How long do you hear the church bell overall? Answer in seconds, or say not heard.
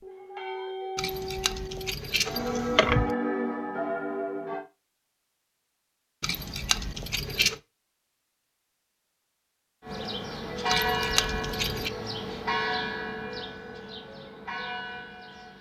10 s.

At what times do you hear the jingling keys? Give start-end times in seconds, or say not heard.
0.9-3.1, 6.2-7.6, 10.7-11.9.